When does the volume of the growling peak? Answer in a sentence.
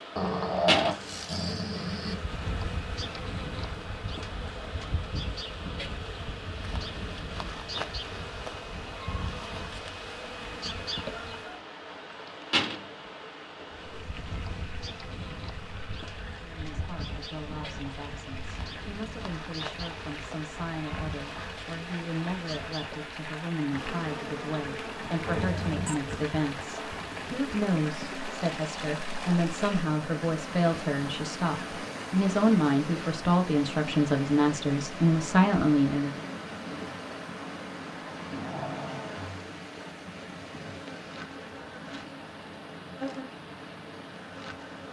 The loudest moment of the growling is at 1 second.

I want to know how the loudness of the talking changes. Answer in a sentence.
The volume of the talking goes up.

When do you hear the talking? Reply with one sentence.
You can hear the talking from 16.4 to 36.1 s.